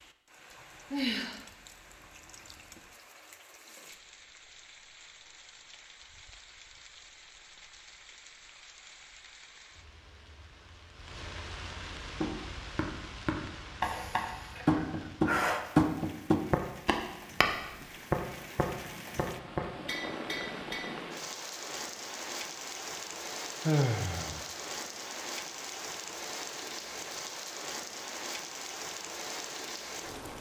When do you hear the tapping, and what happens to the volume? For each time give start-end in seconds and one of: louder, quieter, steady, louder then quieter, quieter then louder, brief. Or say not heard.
12.2-20.9 louder then quieter.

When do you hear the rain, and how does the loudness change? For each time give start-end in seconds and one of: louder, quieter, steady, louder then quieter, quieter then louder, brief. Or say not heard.
0.0-30.3 louder.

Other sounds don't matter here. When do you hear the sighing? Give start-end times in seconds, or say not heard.
0.9-1.4, 13.8-15.7, 23.6-24.4.